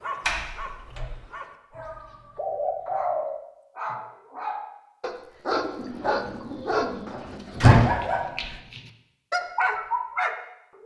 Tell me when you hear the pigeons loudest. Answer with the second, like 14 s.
3 s.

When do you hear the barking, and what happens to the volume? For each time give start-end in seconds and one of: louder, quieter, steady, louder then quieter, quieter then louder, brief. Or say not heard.
0.0-10.8 louder.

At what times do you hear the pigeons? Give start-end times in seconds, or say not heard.
1.8-3.4, 5.5-7.7.